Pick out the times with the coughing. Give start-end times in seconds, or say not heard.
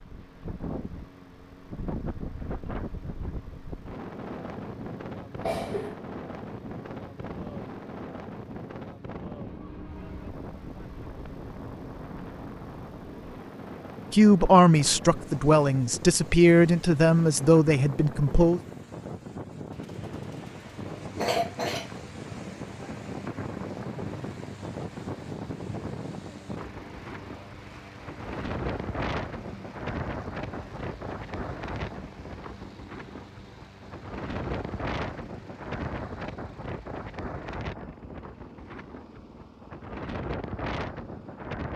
5.3-6.0, 21.1-21.9.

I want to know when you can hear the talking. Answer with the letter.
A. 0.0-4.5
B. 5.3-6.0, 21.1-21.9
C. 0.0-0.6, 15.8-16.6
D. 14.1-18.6
D.